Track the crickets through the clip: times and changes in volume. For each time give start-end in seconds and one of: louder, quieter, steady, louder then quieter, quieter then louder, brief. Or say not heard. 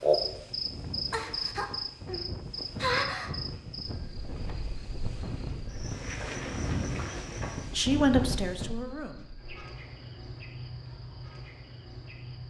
0.0-12.4 quieter.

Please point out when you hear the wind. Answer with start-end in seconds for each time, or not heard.
0.0-8.8.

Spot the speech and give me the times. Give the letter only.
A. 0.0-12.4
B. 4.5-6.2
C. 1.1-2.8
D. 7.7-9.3
D.